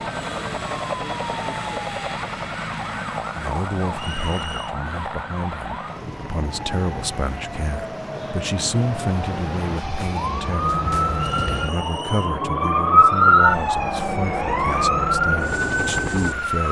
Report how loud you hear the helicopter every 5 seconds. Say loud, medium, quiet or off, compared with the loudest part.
loud, medium, loud, loud.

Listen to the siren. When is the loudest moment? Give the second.
13 s.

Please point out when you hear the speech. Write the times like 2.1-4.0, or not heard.
3.4-16.6.